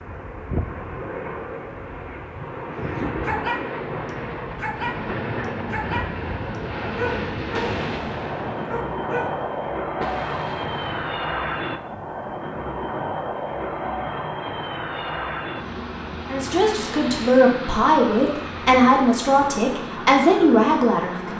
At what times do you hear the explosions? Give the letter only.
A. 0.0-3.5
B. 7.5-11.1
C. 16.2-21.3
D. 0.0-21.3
B.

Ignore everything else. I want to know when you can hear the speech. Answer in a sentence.
You can hear the speech from 16.2 to 21.3 s.